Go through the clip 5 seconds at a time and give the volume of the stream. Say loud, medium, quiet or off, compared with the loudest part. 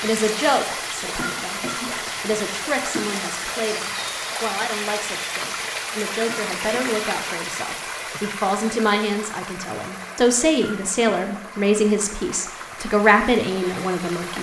loud, loud, medium.